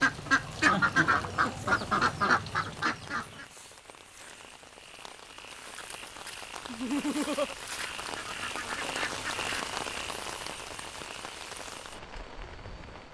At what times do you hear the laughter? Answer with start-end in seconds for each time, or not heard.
0.7-1.2, 6.7-7.5.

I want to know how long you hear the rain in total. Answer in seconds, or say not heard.
13 s.